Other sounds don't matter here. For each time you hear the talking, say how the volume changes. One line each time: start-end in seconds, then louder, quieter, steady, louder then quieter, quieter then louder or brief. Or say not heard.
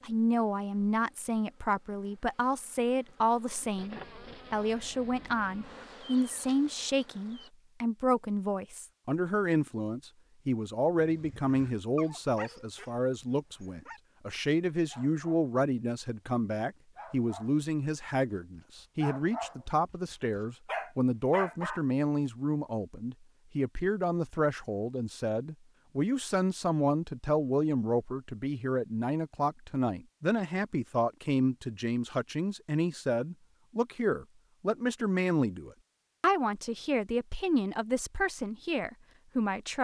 0.0-39.7 steady.